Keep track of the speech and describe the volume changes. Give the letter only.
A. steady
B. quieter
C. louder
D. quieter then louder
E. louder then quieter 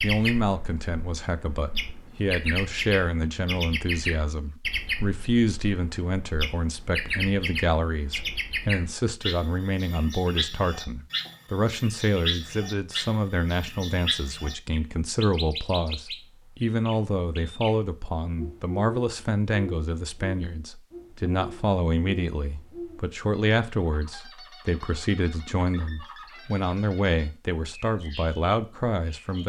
A.